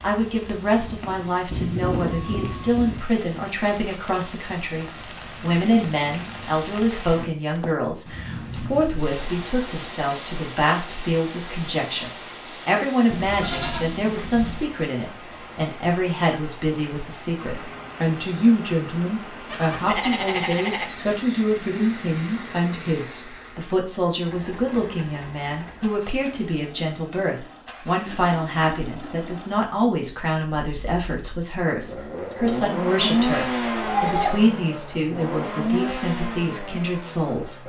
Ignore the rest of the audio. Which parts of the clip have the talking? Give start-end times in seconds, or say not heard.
0.0-37.6.